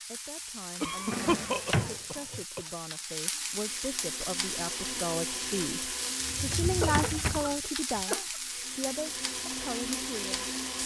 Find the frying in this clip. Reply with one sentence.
The frying can be heard from 0.0 to 10.8 s.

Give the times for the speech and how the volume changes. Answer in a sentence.
You can hear the speech from 0.1 to 10.5 s, getting louder then quieter.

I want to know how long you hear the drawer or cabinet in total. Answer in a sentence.
You can hear the drawer or cabinet for 3 seconds altogether.